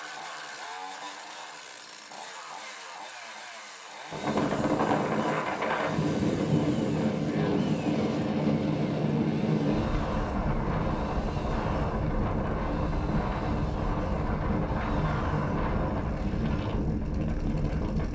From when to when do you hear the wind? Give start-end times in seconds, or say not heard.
4.1-18.1.